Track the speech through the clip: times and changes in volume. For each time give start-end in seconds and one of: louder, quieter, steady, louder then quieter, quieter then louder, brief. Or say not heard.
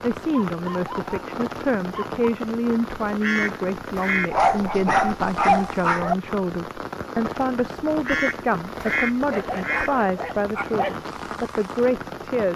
0.0-12.5 steady.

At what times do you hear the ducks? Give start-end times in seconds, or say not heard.
3.0-4.4, 7.9-9.9.